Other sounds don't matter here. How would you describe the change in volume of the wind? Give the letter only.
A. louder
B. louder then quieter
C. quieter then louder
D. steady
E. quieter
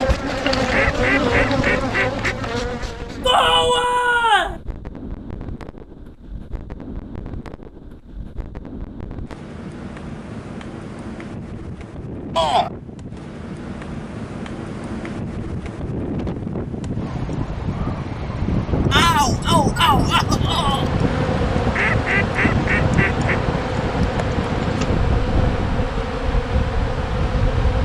A.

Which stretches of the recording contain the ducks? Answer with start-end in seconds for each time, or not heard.
0.7-2.4, 21.8-23.4.